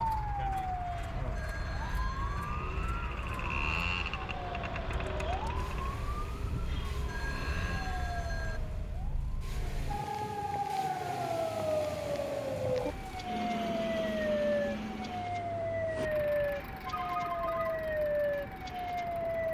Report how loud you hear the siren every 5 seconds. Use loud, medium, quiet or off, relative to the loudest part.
loud, medium, loud, loud.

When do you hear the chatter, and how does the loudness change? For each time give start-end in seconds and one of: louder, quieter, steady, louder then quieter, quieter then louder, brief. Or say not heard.
not heard.